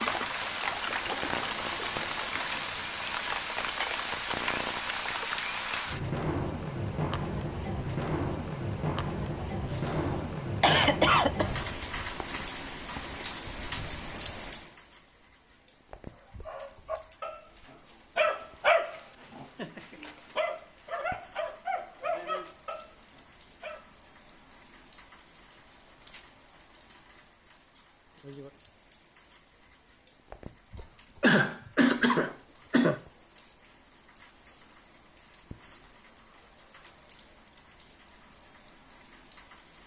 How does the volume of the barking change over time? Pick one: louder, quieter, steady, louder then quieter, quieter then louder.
louder then quieter.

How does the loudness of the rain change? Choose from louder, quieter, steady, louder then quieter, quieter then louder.
quieter.